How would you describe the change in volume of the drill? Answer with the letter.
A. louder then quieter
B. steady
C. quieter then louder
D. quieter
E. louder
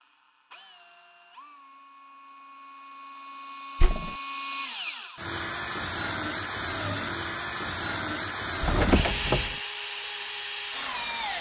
E.